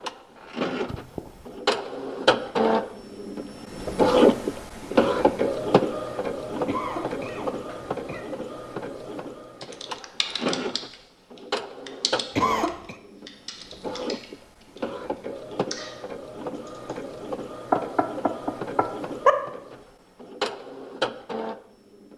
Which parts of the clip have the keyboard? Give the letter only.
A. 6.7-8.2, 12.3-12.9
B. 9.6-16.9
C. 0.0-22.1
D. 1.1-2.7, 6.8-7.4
B.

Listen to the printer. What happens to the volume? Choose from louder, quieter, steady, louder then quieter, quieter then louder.
quieter.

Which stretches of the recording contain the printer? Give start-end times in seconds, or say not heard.
0.0-22.1.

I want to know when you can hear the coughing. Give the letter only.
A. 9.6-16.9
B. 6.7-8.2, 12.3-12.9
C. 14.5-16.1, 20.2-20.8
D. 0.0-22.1
B.